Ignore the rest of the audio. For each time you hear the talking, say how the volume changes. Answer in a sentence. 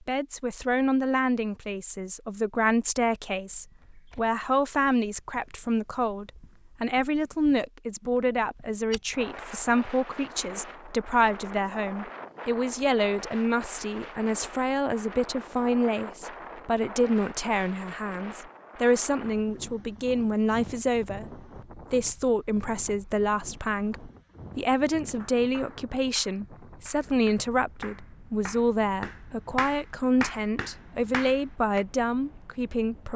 The talking can be heard from 0.1 to 33.1 s, at a steady volume.